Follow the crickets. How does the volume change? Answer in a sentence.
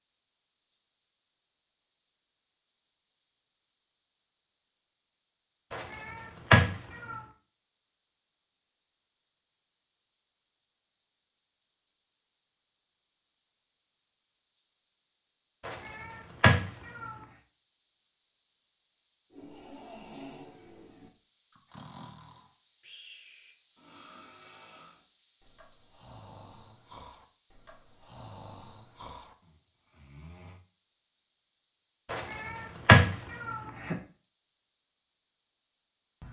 The volume of the crickets goes up, then down.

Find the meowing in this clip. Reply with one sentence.
The meowing can be heard from 5.7 to 7.2 s, from 15.7 to 17.1 s and from 32.1 to 34.0 s.